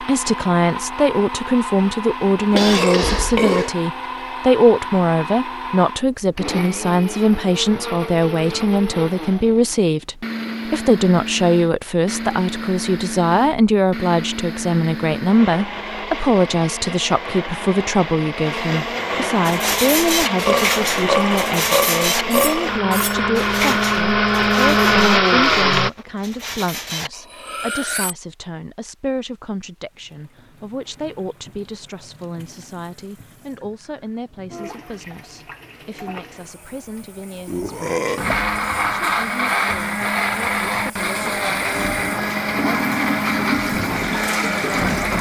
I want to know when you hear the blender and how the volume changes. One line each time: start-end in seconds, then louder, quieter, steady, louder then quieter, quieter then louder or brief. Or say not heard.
0.0-25.9 louder
37.5-45.1 steady.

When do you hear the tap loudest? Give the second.
43 s.